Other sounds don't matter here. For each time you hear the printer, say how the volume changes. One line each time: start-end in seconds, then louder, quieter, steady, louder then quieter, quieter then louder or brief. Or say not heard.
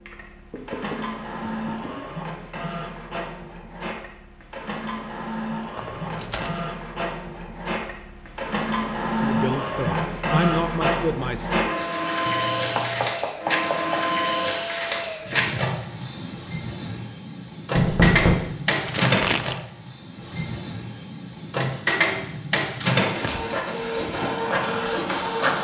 0.0-25.5 louder.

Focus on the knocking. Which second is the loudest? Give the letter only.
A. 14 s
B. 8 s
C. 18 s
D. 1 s
C.